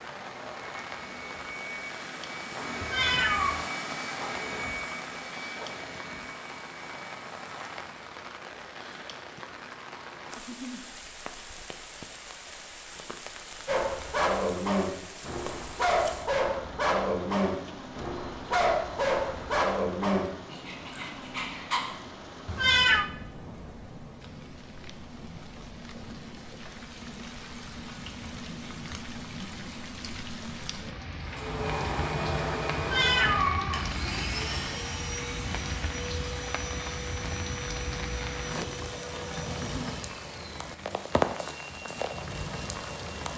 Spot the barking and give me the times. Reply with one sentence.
You can hear the barking from 13.7 to 21.8 s.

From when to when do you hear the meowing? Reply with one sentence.
The meowing can be heard from 2.8 to 3.6 s, from 22.4 to 23.1 s and from 32.8 to 34.7 s.